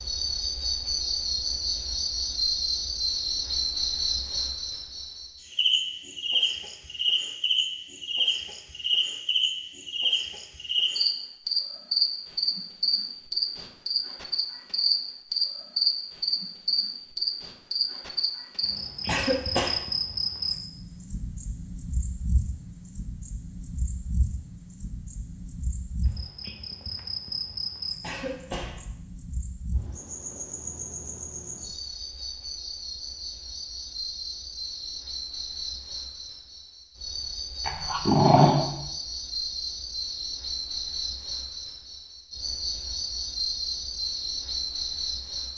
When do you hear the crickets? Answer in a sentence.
The crickets can be heard from 0.0 to 45.5 s.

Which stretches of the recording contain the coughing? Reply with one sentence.
You can hear the coughing from 19.1 to 19.9 s and from 28.0 to 28.8 s.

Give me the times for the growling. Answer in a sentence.
The growling can be heard from 37.6 to 38.7 s.